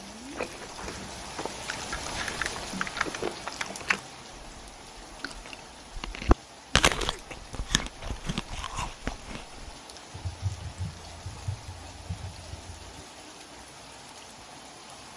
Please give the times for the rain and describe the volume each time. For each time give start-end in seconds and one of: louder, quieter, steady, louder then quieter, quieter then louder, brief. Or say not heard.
0.0-15.1 quieter.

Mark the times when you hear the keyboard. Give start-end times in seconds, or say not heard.
1.7-3.2, 10.1-12.8.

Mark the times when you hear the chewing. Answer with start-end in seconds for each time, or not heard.
0.3-9.8.